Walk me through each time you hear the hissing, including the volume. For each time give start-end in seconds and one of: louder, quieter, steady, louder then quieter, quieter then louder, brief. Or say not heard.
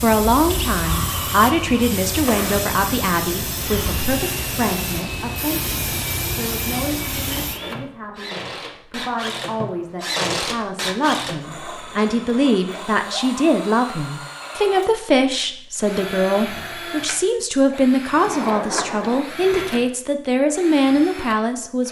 0.0-7.6 steady.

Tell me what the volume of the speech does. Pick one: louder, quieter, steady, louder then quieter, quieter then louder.
quieter then louder.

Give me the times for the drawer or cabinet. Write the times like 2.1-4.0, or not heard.
18.2-19.3.